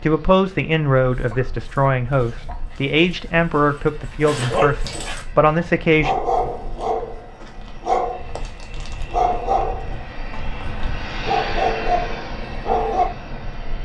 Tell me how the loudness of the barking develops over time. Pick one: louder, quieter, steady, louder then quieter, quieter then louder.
louder.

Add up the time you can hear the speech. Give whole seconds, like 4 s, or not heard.
6 s.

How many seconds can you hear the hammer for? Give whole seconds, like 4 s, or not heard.
not heard.